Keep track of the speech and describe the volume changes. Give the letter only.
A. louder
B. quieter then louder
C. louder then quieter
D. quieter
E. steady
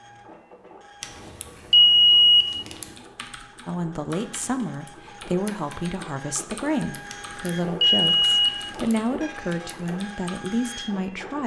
E.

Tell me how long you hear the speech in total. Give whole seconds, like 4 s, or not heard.
8 s.